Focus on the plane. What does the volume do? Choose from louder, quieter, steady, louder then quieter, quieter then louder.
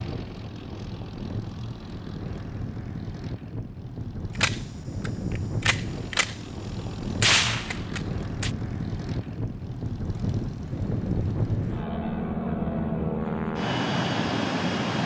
louder.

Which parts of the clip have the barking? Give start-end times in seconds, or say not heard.
not heard.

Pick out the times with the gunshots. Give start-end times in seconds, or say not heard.
4.3-6.3, 7.2-8.5.